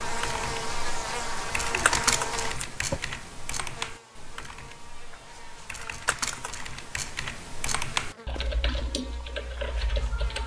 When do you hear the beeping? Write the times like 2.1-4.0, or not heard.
not heard.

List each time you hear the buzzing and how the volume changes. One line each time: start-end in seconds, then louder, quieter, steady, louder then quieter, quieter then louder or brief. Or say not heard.
0.0-10.4 quieter.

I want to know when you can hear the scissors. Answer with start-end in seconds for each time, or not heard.
1.6-3.0, 5.7-6.5.